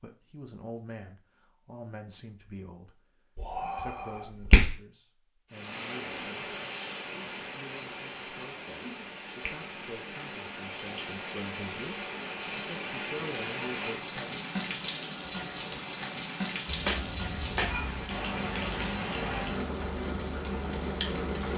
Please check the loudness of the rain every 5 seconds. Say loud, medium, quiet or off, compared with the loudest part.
off, medium, loud, loud, loud.